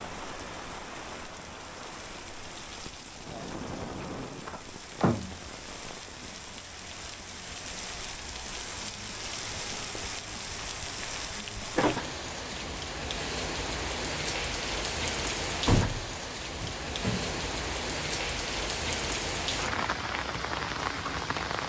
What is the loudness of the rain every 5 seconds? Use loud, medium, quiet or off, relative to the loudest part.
medium, medium, loud, loud, loud.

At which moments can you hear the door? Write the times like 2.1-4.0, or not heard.
3.9-5.4, 11.4-12.8, 15.7-17.4.